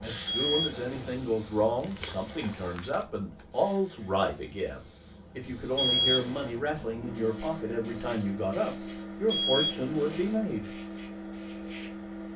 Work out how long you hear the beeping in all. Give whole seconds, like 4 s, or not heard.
3 s.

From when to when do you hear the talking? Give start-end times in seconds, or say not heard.
0.0-10.7.